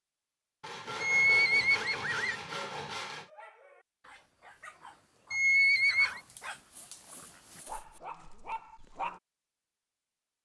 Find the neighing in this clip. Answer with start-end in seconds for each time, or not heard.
1.0-2.4, 5.3-6.2.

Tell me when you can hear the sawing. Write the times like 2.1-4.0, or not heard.
0.6-3.3, 6.2-8.0.